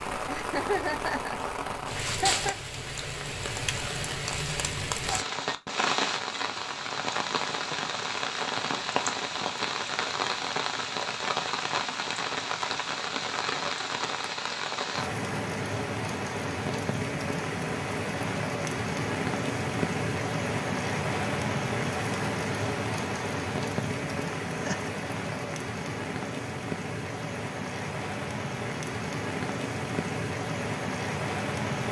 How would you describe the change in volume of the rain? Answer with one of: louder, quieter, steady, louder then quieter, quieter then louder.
steady.